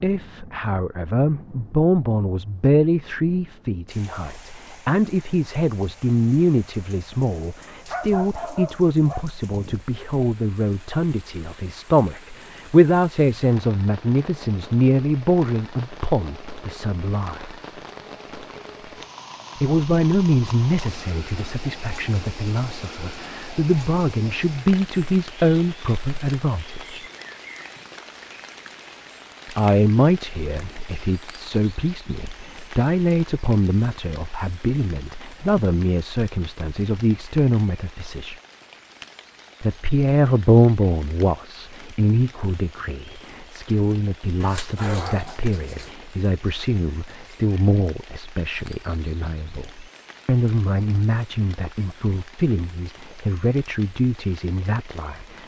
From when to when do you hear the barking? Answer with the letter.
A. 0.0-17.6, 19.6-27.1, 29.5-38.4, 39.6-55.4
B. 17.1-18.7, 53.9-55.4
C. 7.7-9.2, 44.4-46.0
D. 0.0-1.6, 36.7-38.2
C.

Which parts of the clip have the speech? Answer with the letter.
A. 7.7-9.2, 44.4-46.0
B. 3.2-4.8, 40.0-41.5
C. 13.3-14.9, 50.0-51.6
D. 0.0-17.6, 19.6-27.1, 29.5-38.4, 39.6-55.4
D.